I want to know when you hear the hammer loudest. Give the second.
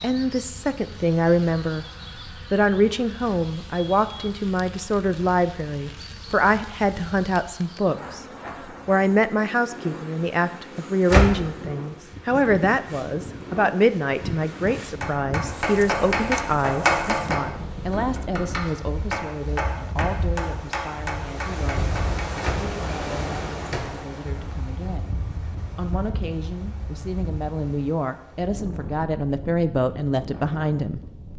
17 s.